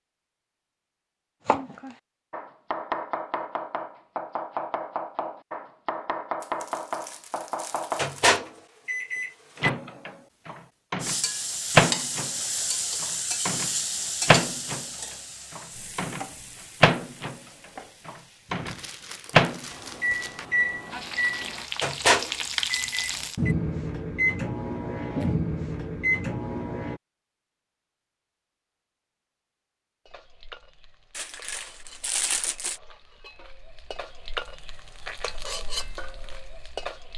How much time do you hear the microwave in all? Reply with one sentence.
The microwave can be heard for 19 seconds in total.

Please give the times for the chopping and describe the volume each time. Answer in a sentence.
The chopping can be heard from 1.4 to 8.1 s, at a steady volume.